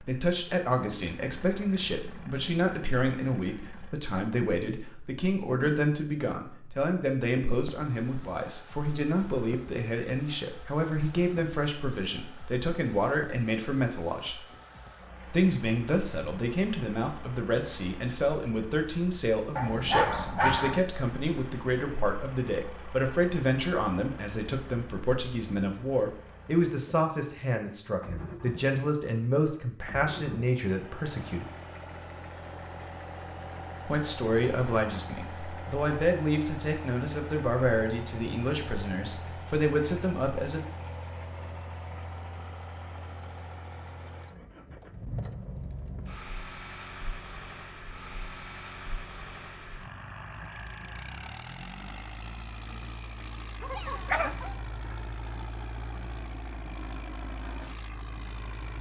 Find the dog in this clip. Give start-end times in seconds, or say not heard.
19.6-20.8, 53.6-54.5.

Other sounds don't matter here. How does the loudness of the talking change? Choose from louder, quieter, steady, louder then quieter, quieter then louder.
steady.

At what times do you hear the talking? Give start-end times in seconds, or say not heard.
0.0-14.4, 15.2-31.5, 33.9-40.6.